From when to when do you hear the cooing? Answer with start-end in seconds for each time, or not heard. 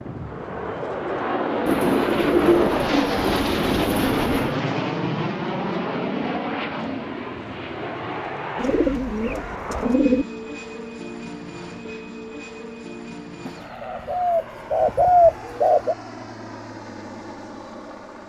1.6-4.5, 8.6-10.2, 13.4-15.9.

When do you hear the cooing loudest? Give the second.
15 s.